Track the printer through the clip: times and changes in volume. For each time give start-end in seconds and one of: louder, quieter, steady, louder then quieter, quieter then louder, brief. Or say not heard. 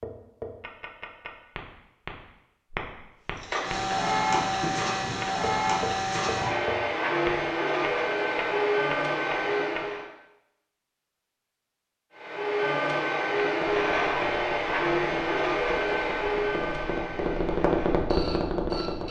3.4-10.1 steady
12.2-19.0 quieter.